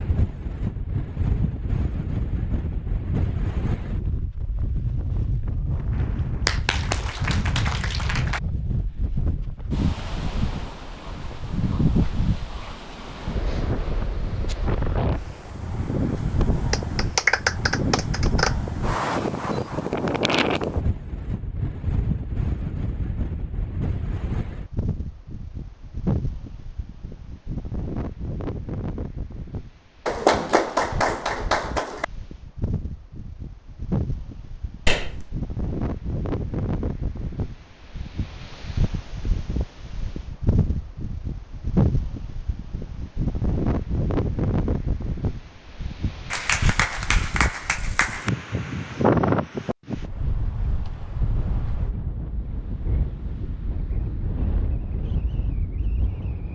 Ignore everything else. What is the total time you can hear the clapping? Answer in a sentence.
The clapping can be heard for 8 seconds in total.